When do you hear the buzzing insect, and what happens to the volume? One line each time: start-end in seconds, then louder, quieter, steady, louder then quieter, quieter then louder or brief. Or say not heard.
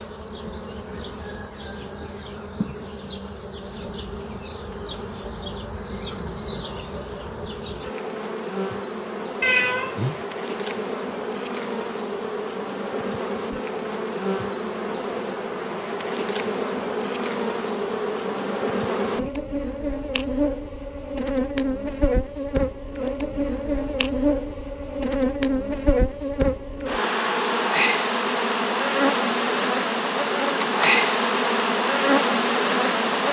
0.0-33.2 louder.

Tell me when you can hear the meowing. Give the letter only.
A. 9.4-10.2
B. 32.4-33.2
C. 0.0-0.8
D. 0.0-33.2
A.